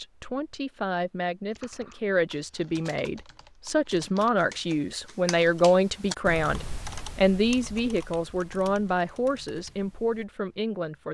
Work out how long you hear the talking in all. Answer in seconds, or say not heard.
11 s.